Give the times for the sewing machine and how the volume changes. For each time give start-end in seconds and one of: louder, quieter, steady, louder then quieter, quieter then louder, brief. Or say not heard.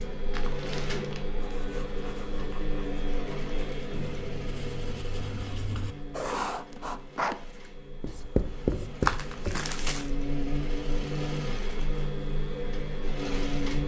0.0-13.8 quieter then louder.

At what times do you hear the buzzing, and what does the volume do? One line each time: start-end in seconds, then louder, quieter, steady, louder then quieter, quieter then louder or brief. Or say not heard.
0.0-13.8 quieter then louder.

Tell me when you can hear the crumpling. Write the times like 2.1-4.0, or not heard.
0.3-1.3, 9.0-10.1.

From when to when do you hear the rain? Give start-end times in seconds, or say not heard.
not heard.